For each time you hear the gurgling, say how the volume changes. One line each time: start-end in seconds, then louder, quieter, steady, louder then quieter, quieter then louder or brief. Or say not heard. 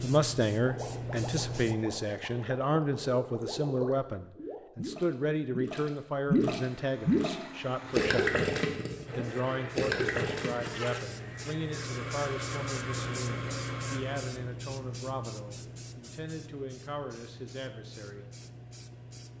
0.6-7.3 louder
8.0-10.8 brief.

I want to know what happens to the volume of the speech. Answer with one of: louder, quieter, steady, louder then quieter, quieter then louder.
quieter.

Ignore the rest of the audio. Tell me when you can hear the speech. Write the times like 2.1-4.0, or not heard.
0.0-8.4, 9.2-18.2.